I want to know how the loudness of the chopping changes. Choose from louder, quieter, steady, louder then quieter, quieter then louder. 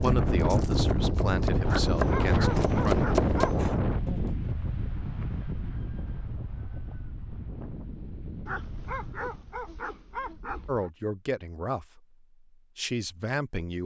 louder.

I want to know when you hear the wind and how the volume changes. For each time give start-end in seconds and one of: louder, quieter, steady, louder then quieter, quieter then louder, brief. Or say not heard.
0.0-9.6 quieter.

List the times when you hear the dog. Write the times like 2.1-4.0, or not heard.
1.6-3.5, 8.4-10.9.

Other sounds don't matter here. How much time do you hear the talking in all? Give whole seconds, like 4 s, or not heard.
6 s.